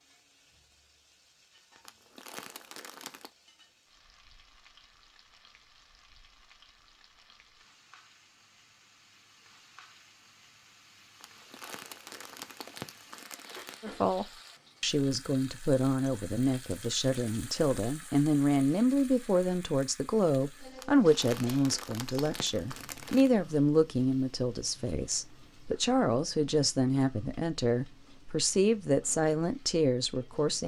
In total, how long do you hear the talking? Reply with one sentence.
You can hear the talking for 17 seconds altogether.